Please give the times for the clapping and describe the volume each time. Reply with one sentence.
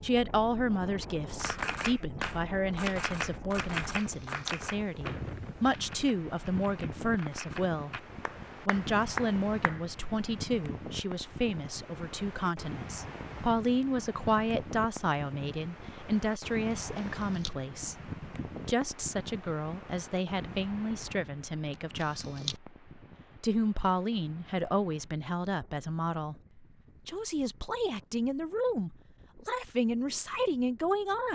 You can hear the clapping from 1.4 to 9.8 s, getting quieter then louder.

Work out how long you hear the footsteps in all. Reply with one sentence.
The footsteps can't be heard in this clip.